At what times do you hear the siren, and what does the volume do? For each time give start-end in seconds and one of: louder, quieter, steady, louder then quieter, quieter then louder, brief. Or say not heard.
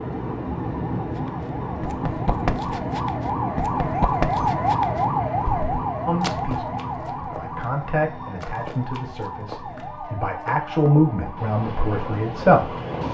0.0-13.0 louder then quieter.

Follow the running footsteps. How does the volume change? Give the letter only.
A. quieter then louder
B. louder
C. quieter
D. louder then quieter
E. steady
C.